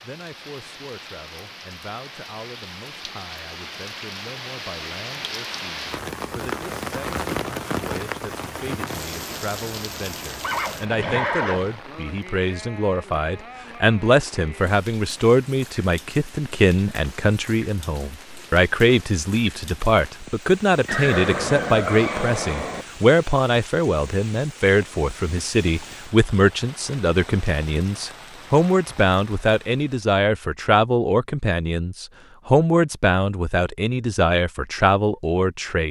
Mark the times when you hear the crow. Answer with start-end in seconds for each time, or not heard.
not heard.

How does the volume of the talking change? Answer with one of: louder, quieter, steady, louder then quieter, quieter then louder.
louder.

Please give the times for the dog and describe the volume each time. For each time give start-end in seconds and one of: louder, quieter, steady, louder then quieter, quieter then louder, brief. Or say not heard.
not heard.